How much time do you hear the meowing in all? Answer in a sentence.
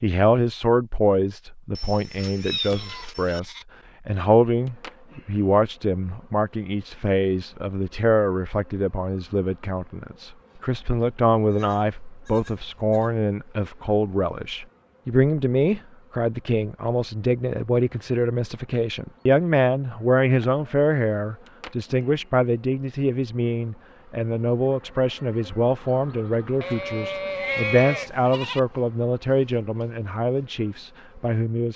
You can hear the meowing for 2 seconds altogether.